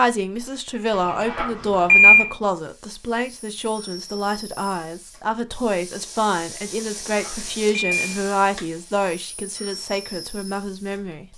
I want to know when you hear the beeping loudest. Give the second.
2 s.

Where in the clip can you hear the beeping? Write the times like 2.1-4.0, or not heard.
1.1-2.3, 7.2-8.6.